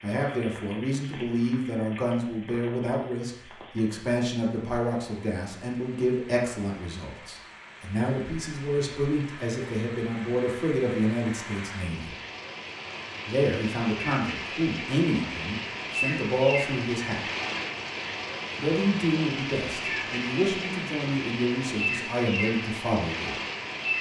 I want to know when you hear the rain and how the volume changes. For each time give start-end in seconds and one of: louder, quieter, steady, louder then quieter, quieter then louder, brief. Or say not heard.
0.0-23.9 louder.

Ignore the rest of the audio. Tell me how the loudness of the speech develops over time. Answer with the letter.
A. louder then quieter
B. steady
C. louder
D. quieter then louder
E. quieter
B.